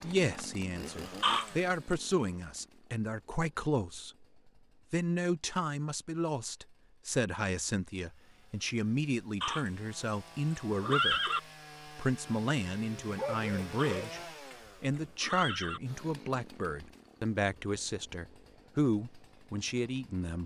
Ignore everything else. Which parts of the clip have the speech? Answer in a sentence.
You can hear the speech from 0.0 to 4.2 s, from 4.9 to 11.2 s, from 11.8 to 14.2 s and from 14.8 to 20.4 s.